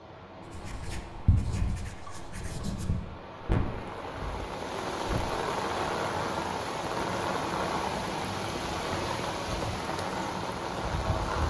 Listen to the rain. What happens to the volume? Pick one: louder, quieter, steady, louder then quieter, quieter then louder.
louder.